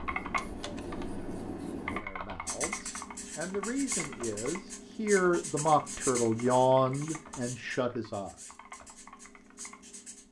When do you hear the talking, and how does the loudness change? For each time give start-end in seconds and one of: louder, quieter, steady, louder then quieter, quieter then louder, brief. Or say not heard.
1.8-8.3 louder then quieter.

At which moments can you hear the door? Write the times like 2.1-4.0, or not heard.
0.2-0.9.